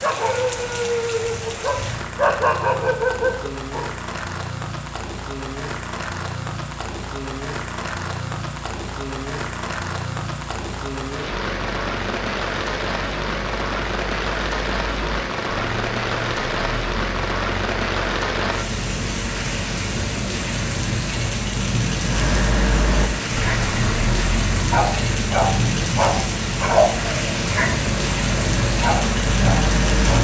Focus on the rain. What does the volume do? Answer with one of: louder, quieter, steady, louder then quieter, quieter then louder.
louder.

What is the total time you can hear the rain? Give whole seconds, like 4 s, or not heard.
30 s.